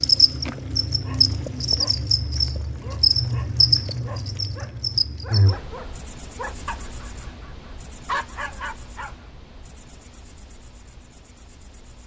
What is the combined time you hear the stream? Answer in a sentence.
You can't hear the stream here.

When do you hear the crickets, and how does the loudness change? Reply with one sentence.
The crickets can be heard from 0.0 to 12.0 s, getting quieter.